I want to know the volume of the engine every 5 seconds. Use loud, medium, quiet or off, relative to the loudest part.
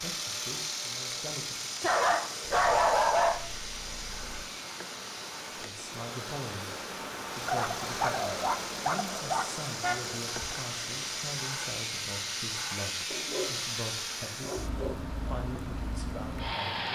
loud, medium, loud, loud.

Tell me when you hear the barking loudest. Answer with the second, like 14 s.
3 s.